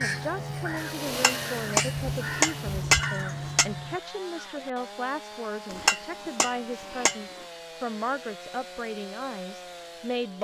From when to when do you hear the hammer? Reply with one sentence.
The hammer can be heard from 1.1 to 3.6 s and from 5.7 to 7.2 s.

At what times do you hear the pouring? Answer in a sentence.
The pouring can't be heard in this clip.